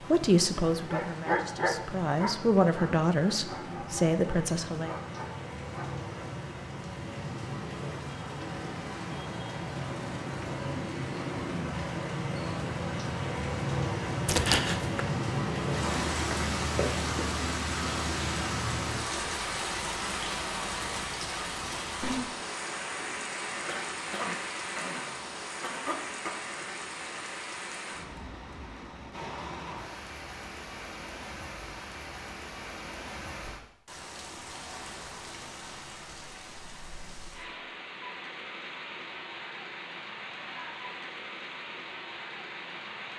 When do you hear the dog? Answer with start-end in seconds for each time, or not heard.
0.8-6.2.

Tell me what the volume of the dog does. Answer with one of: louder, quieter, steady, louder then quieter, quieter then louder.
quieter.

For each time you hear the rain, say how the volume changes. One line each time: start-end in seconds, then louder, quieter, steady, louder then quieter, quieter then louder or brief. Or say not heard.
0.0-43.1 louder then quieter.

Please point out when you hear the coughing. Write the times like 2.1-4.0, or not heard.
14.2-15.0, 23.6-26.4.